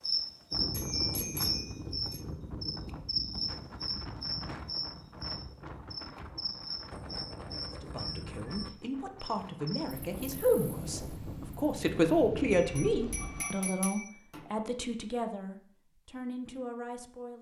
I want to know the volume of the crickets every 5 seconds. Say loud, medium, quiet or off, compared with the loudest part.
loud, medium, quiet, off.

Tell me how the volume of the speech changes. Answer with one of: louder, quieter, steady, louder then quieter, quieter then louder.
louder then quieter.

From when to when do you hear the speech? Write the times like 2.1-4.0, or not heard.
7.8-17.3.